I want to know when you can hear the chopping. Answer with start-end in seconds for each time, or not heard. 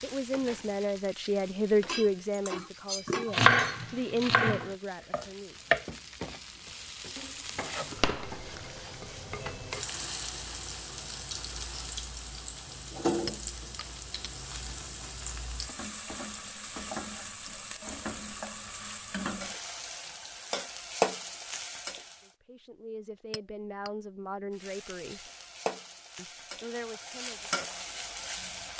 3.3-5.8, 6.7-9.6.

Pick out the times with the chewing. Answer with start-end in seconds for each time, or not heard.
not heard.